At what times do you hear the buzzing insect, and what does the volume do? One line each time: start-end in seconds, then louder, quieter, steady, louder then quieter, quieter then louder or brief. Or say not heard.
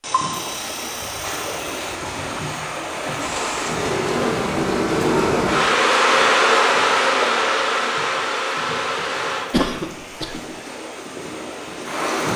3.2-9.5 louder then quieter.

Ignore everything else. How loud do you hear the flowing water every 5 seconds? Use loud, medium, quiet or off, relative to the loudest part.
loud, medium, loud.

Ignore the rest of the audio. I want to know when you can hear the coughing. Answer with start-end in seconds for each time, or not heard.
9.5-10.4.